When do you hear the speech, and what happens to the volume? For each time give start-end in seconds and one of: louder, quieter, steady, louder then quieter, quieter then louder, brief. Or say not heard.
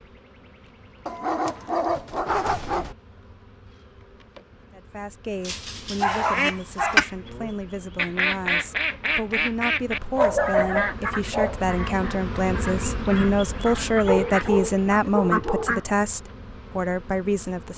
4.7-17.7 louder.